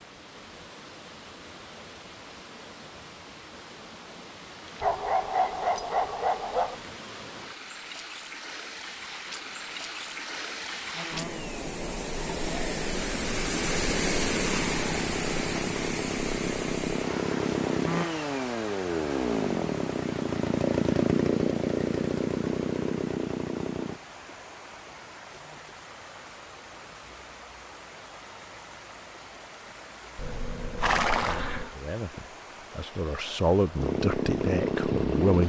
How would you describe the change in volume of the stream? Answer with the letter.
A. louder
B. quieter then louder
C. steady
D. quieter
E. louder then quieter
E.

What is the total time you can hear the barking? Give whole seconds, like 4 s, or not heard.
2 s.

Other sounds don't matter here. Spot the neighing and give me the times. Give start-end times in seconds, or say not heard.
30.1-31.8.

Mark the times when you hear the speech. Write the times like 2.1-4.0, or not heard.
31.1-35.4.